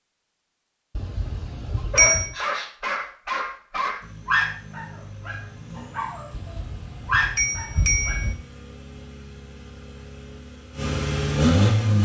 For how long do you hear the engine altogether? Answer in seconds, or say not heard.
8 s.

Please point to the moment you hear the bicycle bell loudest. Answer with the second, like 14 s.
2 s.